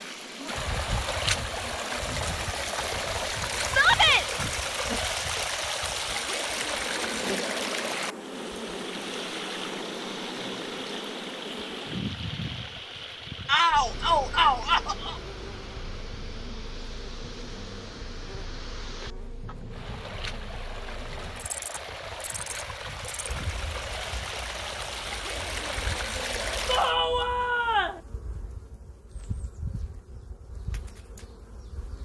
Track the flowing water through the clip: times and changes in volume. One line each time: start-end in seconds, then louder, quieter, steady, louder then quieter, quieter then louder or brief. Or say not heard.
0.0-26.9 quieter then louder.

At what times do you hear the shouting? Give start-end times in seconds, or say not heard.
3.6-4.2, 13.4-15.2, 26.6-28.0.